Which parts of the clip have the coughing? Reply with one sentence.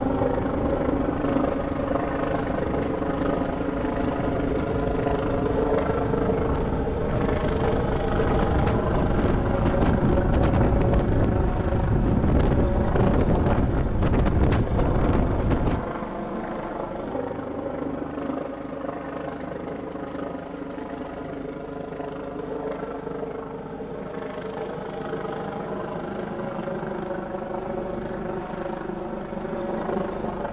The coughing can't be heard in this clip.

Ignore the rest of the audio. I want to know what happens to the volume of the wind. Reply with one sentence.
The loudness of the wind goes up.